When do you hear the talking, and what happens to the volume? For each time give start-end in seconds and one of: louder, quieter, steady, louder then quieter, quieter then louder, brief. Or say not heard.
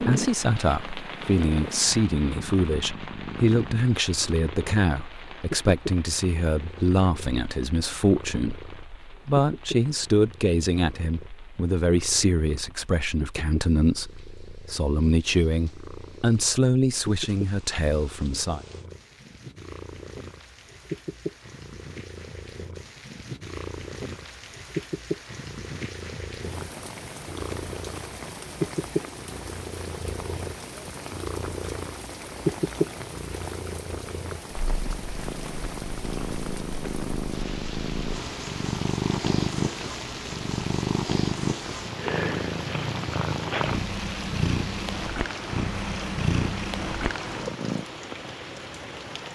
0.0-18.6 steady.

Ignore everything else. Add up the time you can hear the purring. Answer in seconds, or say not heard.
48 s.